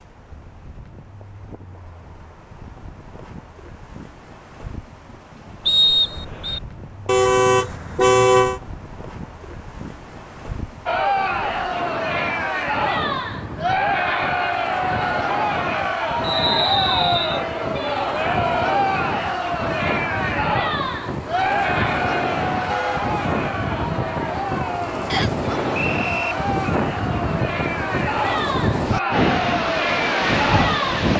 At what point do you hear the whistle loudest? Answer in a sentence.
The loudest moment of the whistle is at 6 seconds.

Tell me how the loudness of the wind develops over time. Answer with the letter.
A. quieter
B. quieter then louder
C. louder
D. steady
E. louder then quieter
C.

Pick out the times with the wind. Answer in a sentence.
You can hear the wind from 0.0 to 31.1 s.